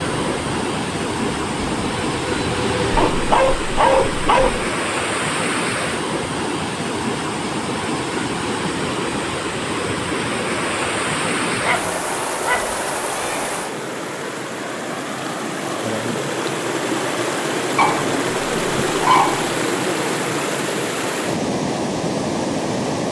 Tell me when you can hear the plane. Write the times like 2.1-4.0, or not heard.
0.0-3.4.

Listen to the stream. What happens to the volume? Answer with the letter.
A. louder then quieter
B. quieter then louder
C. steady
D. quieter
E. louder
C.